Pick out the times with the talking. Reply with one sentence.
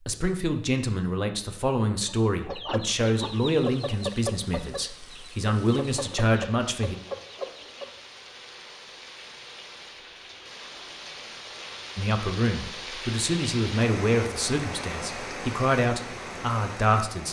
You can hear the talking from 0.1 to 7.0 s and from 11.9 to 17.2 s.